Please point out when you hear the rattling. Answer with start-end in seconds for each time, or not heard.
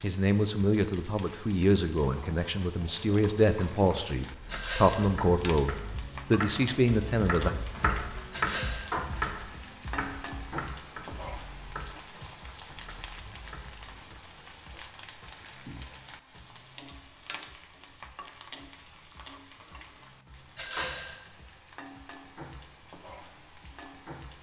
4.5-5.1, 8.3-8.9, 20.6-21.1.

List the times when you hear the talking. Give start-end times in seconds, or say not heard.
0.0-7.5.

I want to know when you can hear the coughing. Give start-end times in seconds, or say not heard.
not heard.